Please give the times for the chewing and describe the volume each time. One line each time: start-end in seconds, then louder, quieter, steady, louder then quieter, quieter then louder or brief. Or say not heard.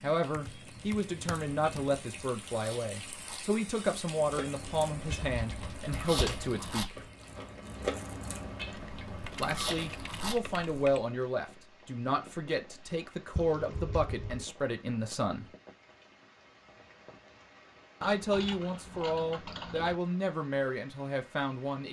1.1-10.7 louder.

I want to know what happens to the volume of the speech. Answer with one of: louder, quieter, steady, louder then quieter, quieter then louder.
steady.